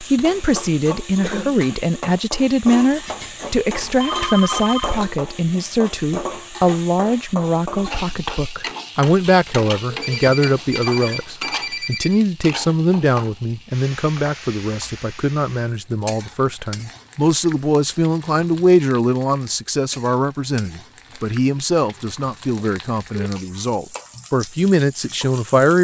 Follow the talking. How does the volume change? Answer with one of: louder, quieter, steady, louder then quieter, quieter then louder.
steady.